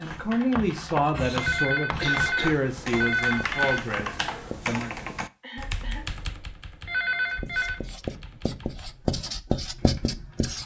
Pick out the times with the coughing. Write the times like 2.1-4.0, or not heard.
2.0-2.5, 5.4-6.0.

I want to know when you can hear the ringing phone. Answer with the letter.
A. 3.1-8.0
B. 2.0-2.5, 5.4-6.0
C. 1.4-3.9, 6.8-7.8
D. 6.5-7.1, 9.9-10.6
C.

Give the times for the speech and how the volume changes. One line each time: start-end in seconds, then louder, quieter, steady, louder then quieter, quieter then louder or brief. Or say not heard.
0.0-4.9 quieter.